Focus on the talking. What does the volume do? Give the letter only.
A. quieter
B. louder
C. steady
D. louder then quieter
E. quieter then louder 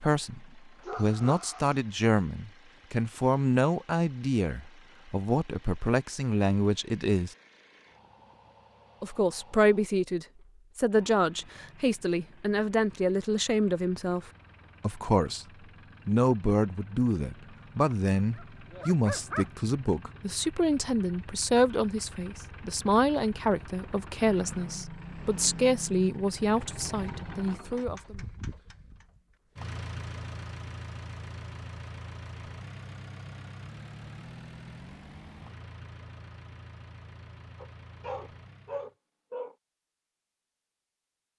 C.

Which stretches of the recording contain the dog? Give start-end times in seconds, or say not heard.
0.8-1.8, 17.9-19.5, 37.6-39.5.